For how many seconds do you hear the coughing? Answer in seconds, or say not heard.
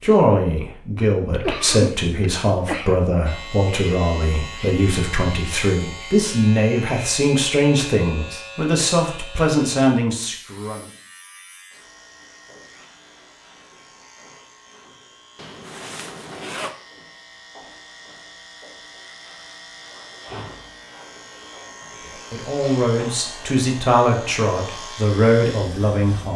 2 s.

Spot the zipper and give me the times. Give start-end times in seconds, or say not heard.
15.3-16.8.